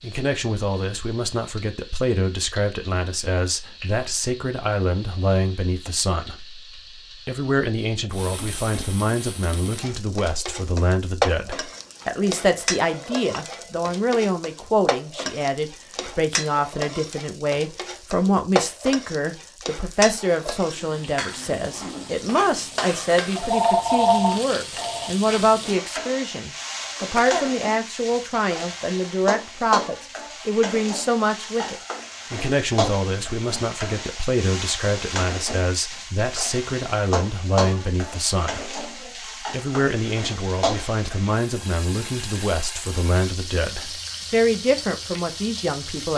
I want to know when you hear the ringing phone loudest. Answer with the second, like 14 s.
24 s.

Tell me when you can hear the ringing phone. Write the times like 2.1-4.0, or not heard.
12.0-13.7, 23.4-25.1.